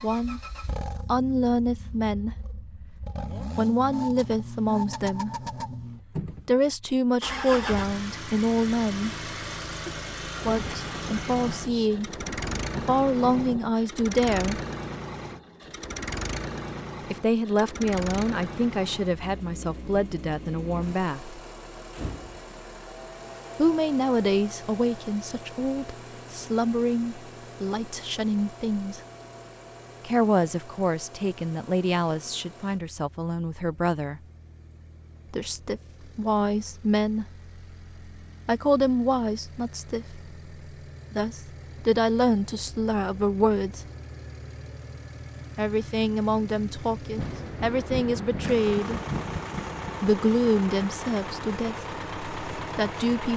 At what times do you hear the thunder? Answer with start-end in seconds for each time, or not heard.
10.4-13.8, 47.1-50.0.